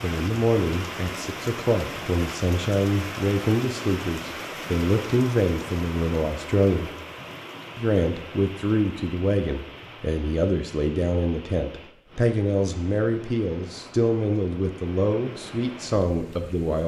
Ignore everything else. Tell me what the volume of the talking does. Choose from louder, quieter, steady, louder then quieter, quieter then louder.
steady.